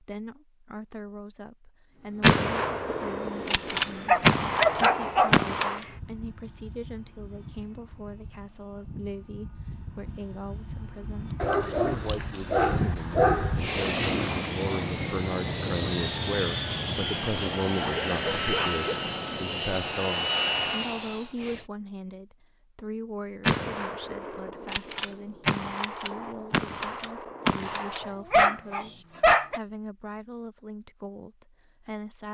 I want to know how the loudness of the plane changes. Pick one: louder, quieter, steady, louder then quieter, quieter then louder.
louder.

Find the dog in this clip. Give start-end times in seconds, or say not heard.
4.0-5.3, 11.4-13.6, 17.8-18.8, 28.0-29.6.